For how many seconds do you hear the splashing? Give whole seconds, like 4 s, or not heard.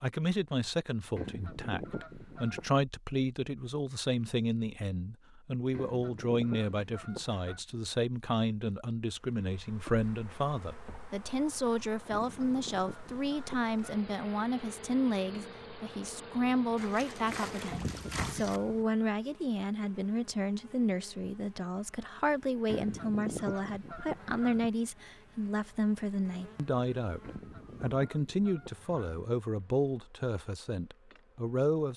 2 s.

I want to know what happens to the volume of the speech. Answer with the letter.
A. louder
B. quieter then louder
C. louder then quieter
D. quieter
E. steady
E.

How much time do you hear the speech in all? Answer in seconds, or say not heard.
32 s.